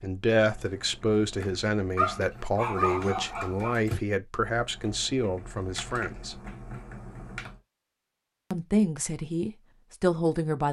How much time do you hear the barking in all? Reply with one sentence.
You can hear the barking for 2 seconds altogether.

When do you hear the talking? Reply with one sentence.
The talking can be heard from 0.0 to 6.4 s and from 8.5 to 10.6 s.